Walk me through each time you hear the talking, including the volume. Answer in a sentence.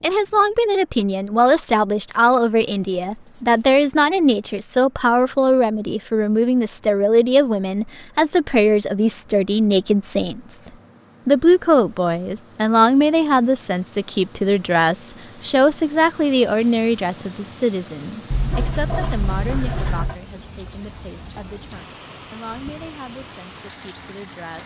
The talking can be heard from 0.0 to 24.6 s, getting quieter.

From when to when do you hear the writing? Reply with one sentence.
You can hear the writing from 2.6 to 4.5 s and from 18.3 to 20.1 s.